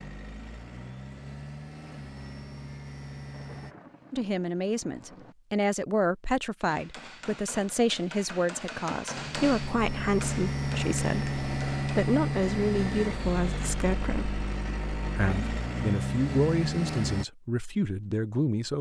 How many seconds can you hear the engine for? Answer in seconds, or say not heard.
12 s.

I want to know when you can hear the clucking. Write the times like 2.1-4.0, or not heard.
not heard.